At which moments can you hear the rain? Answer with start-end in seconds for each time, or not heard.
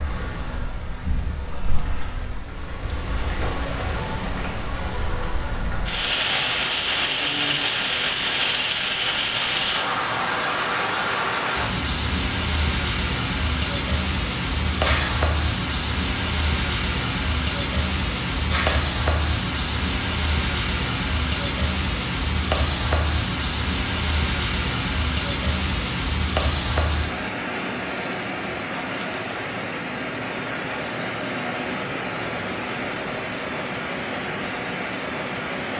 0.0-35.7.